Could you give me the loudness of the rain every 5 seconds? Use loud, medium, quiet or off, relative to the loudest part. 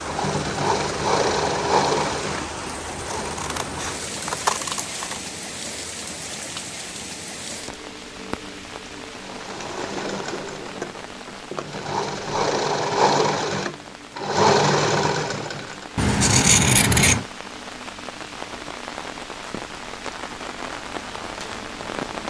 loud, loud, medium, loud, loud.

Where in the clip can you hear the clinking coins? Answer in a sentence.
You can't hear the clinking coins here.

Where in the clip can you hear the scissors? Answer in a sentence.
The scissors can be heard from 2.9 to 5.2 s and from 15.9 to 17.2 s.